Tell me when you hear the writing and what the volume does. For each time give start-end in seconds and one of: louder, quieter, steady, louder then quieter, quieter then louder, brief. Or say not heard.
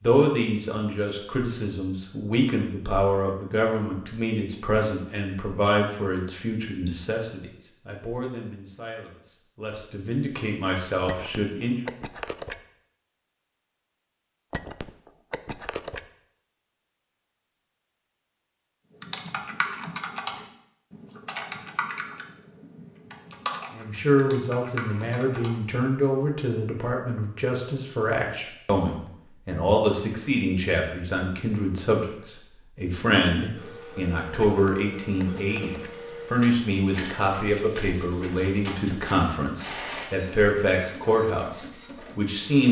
not heard.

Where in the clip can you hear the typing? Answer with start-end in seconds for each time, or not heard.
19.0-25.6.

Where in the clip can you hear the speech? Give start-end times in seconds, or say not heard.
0.0-11.8, 23.7-42.6.